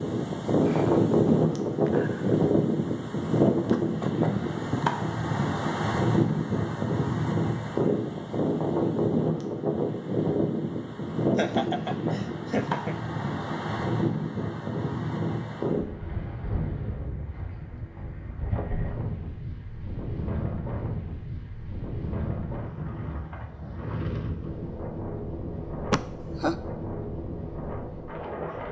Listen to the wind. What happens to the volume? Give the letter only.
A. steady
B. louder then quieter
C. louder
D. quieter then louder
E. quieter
E.